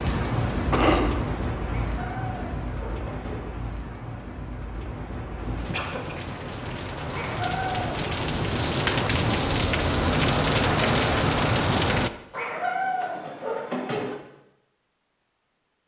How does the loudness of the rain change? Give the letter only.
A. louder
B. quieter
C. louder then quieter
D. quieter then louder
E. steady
D.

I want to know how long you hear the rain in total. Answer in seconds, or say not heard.
12 s.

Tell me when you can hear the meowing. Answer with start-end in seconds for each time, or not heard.
1.6-3.5, 7.1-8.0, 12.3-14.2.